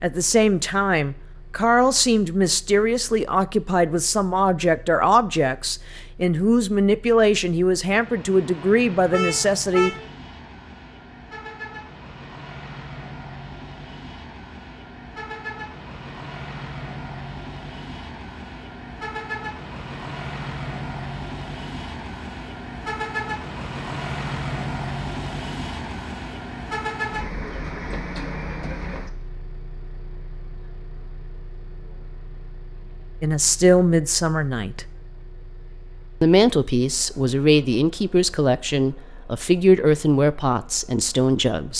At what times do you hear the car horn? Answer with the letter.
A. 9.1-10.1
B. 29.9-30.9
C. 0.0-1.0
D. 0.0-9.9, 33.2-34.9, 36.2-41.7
A.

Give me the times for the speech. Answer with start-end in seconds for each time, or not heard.
0.0-9.9, 33.2-34.9, 36.2-41.7.